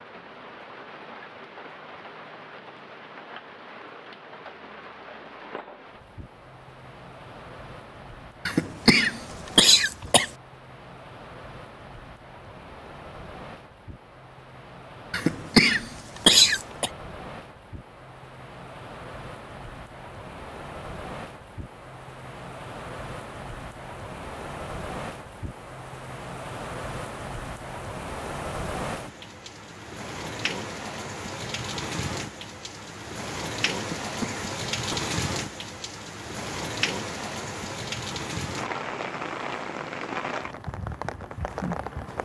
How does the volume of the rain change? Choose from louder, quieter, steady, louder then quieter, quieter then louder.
louder.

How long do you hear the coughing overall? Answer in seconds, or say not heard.
5 s.